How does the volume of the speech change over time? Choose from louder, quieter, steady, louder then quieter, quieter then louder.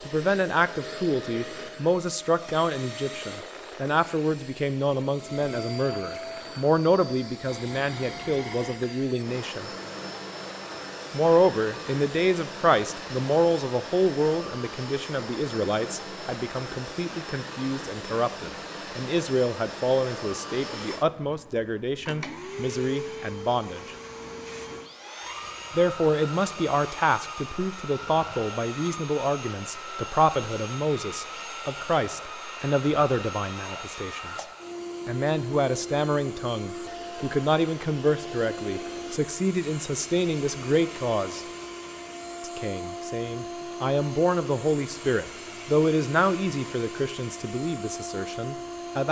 steady.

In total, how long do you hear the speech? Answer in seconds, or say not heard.
44 s.